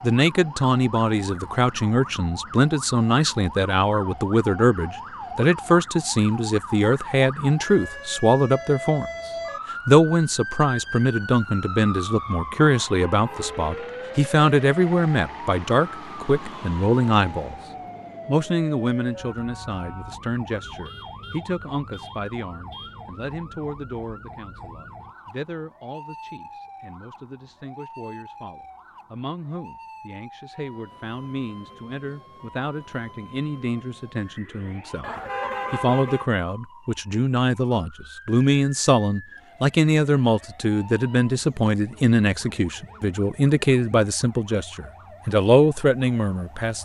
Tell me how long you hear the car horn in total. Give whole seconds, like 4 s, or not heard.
5 s.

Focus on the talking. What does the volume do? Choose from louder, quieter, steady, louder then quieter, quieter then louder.
quieter then louder.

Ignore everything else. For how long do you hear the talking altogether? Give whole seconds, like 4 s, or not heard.
45 s.